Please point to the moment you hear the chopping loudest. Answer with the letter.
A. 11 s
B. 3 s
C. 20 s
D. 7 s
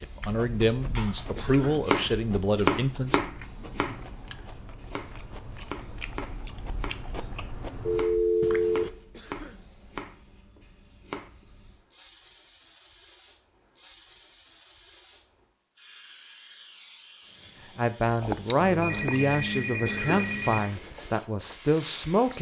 B.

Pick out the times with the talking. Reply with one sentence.
The talking can be heard from 0.0 to 3.2 s and from 17.8 to 22.3 s.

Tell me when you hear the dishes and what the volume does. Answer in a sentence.
You can't hear the dishes here.